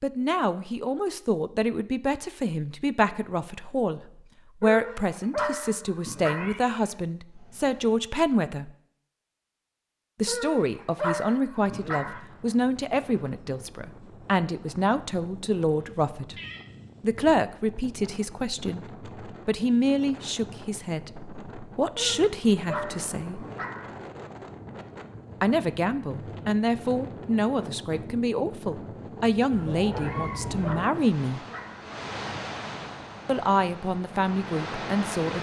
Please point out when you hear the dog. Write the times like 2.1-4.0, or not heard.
4.6-6.5, 10.2-12.2, 21.9-23.9, 29.9-31.9.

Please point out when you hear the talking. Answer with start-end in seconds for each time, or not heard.
0.0-4.0, 4.6-8.7, 10.2-16.4, 17.0-23.4, 25.4-31.4, 33.2-35.3.